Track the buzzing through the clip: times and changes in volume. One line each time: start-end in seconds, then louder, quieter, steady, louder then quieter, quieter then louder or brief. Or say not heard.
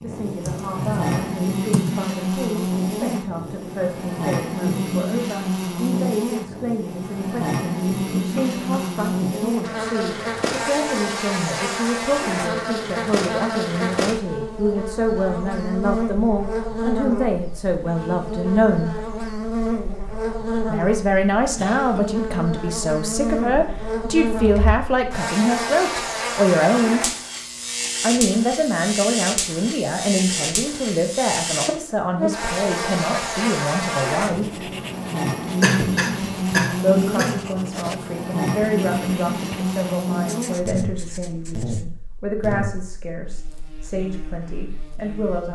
0.0-45.4 steady.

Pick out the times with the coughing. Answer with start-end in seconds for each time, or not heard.
8.3-9.0, 21.6-22.0, 35.6-37.4.